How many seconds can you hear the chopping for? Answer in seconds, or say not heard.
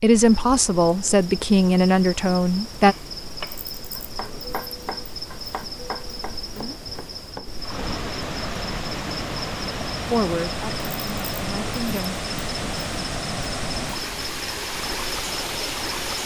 5 s.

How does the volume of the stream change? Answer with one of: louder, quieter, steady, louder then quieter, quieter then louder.
steady.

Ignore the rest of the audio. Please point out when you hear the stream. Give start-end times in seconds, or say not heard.
7.5-16.2.